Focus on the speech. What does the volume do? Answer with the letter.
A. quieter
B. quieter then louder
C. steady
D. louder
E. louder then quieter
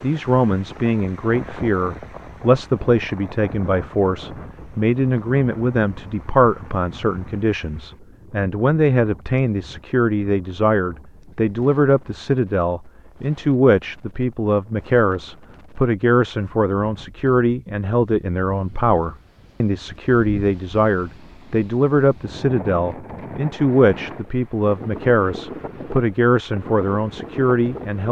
C.